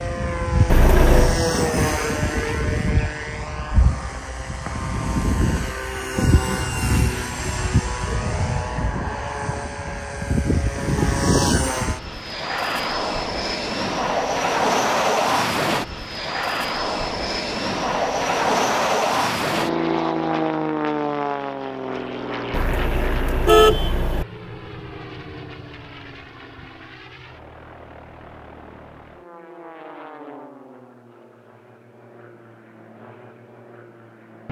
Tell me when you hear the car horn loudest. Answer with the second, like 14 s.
24 s.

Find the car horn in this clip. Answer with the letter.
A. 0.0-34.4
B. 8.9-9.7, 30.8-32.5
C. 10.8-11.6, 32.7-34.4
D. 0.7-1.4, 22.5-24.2
D.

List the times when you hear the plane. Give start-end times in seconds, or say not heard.
0.0-34.4.